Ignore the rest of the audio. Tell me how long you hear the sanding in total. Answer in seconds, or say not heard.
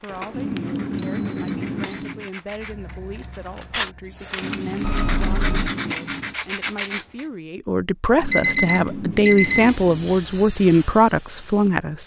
7 s.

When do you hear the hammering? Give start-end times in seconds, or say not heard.
0.3-2.3, 4.4-6.4, 8.2-10.0.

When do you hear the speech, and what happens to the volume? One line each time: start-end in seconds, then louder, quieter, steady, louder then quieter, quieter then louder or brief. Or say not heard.
0.0-12.0 louder.